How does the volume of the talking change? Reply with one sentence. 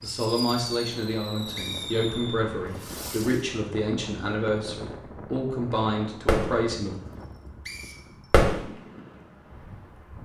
The loudness of the talking stays about the same.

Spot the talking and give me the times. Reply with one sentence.
You can hear the talking from 0.0 to 7.0 s.